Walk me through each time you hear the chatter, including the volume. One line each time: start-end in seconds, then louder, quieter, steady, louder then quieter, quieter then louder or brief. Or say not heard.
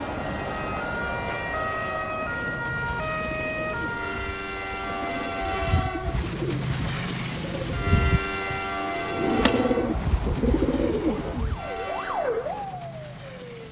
not heard.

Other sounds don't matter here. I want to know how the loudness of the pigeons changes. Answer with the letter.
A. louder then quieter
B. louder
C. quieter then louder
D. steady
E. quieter
B.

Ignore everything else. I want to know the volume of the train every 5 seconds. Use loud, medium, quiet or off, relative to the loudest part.
medium, loud, medium.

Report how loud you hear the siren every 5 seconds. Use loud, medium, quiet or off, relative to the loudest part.
loud, off, loud.